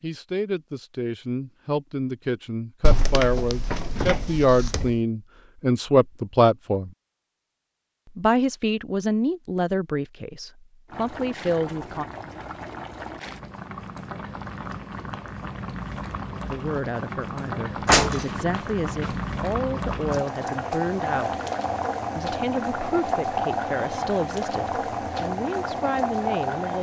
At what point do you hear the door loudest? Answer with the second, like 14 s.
18 s.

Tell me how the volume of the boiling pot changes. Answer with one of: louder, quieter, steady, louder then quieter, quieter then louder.
louder.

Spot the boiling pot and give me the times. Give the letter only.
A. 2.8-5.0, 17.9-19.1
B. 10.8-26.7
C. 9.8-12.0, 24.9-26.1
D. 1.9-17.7
B.